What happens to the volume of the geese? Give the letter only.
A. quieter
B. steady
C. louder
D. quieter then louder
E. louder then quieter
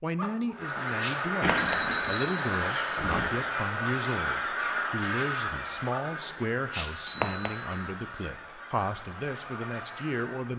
A.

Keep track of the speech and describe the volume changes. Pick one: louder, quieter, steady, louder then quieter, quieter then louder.
steady.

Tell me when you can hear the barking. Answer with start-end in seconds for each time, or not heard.
0.1-1.8, 5.9-7.5.